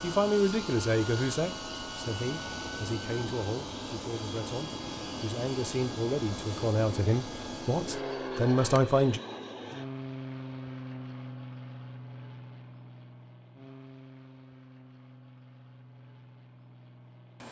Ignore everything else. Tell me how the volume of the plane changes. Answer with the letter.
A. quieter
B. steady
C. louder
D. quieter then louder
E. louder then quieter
A.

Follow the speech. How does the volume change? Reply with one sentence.
The loudness of the speech goes down, then up.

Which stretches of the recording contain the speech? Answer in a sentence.
You can hear the speech from 0.0 to 9.2 s.